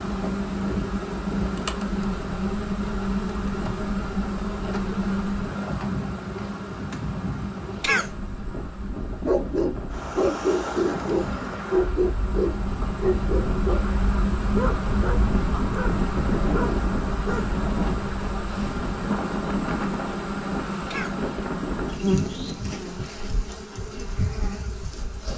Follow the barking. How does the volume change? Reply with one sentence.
The loudness of the barking goes down.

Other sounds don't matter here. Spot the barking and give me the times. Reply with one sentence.
You can hear the barking from 9.2 to 17.5 s.